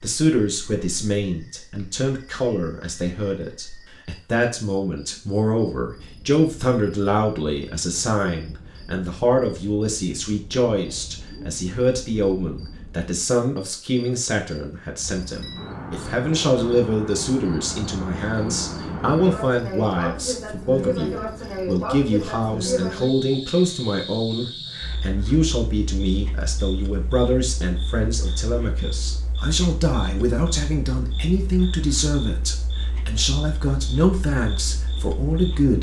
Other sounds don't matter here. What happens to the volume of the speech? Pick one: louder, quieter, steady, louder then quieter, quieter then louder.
steady.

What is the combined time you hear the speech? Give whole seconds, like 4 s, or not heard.
36 s.